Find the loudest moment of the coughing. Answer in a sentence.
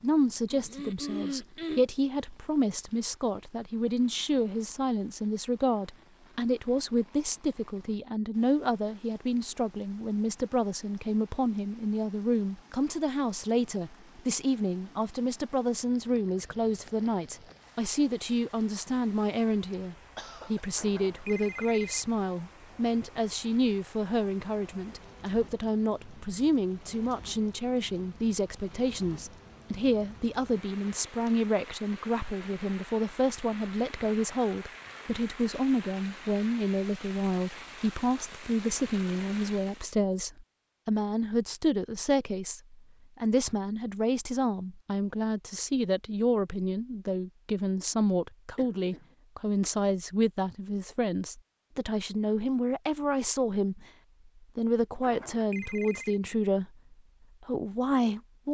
The volume of the coughing peaks at 1 second.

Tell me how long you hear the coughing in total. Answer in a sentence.
You can hear the coughing for 3 seconds altogether.